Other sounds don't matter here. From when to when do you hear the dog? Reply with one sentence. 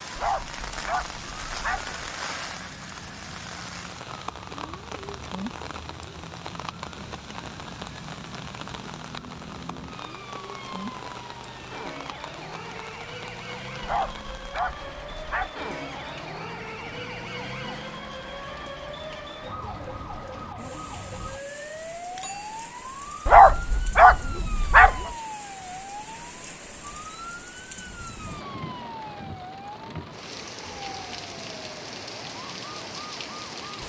The dog can be heard from 0.1 to 1.9 s, from 13.8 to 15.5 s and from 23.2 to 25.1 s.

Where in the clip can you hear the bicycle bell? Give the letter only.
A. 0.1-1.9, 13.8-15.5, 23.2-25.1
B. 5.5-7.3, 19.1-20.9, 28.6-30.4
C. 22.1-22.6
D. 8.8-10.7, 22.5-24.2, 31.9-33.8
C.